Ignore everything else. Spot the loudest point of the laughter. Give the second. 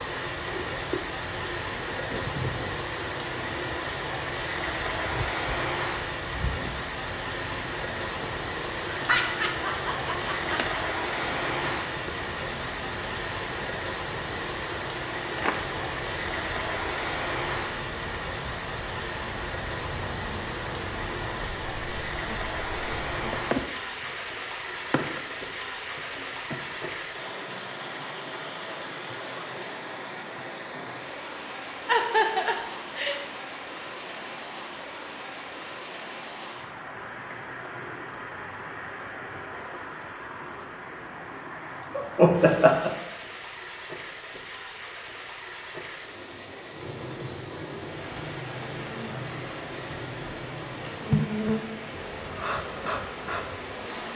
42 s.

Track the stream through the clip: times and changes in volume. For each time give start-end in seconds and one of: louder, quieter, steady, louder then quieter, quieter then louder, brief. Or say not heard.
0.0-54.1 quieter.